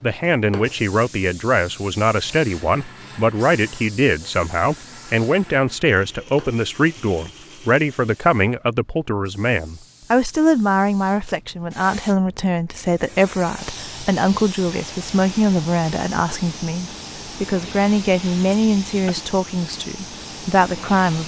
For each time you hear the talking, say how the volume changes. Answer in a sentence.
You can hear the talking from 0.0 to 21.2 s, at a steady volume.